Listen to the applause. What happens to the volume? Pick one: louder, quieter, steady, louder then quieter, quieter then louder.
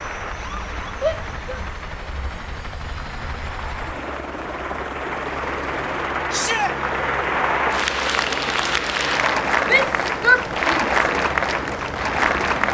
louder.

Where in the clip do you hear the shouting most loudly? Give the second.
10 s.